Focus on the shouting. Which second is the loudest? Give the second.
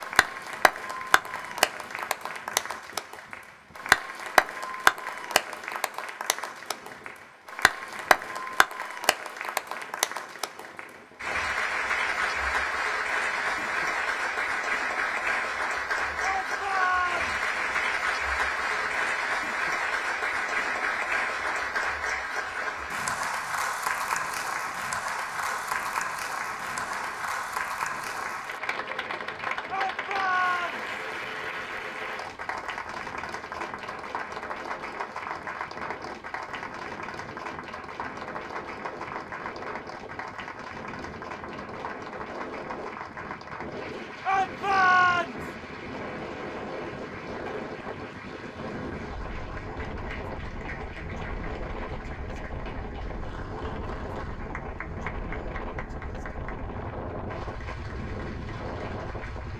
45 s.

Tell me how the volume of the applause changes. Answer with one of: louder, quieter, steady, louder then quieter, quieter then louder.
quieter.